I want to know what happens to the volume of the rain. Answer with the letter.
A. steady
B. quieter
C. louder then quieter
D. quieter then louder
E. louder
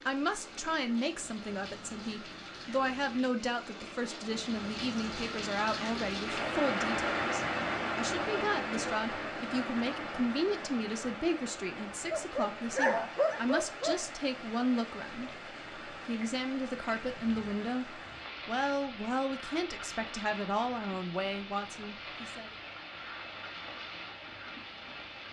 C.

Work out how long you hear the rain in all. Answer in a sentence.
You can hear the rain for 25 seconds altogether.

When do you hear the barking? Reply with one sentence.
You can hear the barking from 12.1 to 14.1 s.